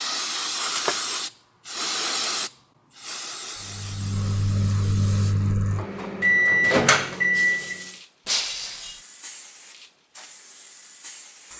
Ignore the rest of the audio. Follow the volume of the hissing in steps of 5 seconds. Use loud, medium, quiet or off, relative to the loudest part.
loud, quiet, quiet.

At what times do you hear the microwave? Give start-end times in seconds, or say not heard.
3.6-7.9.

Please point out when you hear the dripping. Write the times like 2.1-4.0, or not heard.
not heard.